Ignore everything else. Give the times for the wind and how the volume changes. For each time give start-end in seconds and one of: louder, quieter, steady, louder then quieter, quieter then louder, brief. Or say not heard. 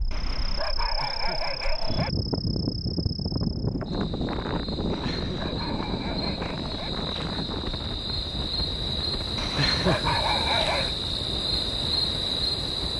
0.0-12.9 quieter.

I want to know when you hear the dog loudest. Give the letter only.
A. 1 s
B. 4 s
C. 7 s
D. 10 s
D.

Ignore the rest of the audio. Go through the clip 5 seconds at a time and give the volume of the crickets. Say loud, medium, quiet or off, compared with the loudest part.
medium, medium, loud.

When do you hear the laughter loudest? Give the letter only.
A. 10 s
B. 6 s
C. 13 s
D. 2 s
A.